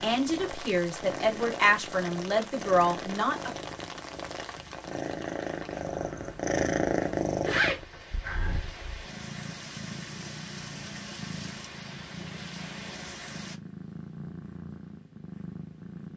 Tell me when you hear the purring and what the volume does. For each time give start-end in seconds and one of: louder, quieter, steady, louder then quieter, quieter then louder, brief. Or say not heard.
0.0-16.1 louder then quieter.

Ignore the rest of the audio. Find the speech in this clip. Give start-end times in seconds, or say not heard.
0.0-3.5.